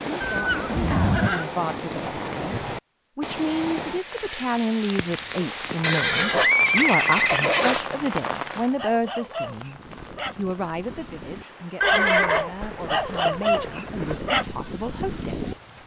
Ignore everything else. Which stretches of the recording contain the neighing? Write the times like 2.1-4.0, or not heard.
0.2-1.4, 5.8-7.8, 11.8-14.2.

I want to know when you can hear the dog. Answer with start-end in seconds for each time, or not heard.
8.6-15.6.